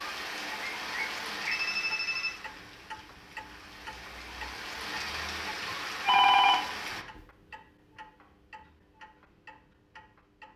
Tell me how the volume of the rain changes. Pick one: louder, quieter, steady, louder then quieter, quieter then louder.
quieter then louder.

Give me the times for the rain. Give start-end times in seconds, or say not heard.
0.0-7.0.